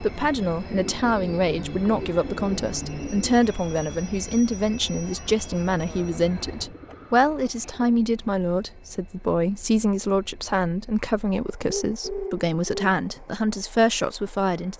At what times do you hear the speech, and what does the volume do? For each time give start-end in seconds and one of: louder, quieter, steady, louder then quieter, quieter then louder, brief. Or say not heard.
0.0-14.7 steady.